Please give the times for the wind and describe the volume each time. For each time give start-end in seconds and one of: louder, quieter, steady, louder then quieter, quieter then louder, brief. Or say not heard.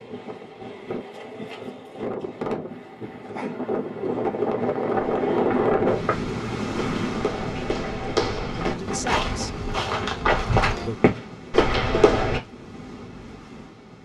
0.0-13.9 louder then quieter.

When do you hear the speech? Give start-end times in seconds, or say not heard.
8.6-9.6, 10.6-11.0.